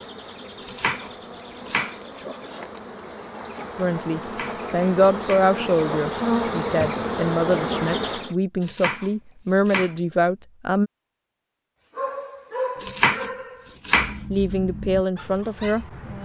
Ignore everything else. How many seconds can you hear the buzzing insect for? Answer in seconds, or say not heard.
8 s.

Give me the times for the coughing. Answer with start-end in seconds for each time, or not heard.
not heard.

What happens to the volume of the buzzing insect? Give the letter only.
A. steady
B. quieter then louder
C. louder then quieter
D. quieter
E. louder
E.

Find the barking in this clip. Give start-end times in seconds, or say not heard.
11.9-16.2.